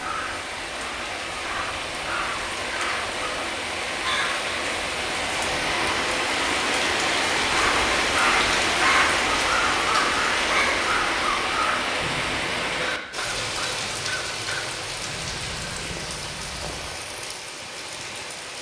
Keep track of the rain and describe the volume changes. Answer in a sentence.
The volume of the rain goes up, then down.